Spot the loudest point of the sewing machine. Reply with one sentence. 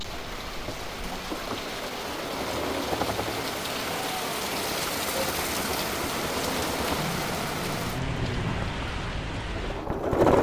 The loudest moment of the sewing machine is at 10 seconds.